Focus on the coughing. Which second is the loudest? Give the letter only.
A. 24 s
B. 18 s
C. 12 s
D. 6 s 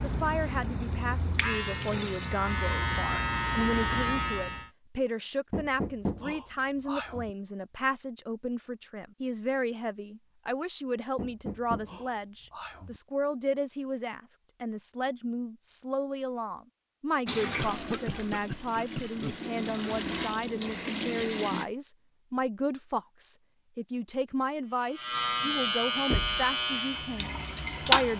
B.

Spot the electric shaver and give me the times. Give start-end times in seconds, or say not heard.
0.0-4.7, 24.6-28.1.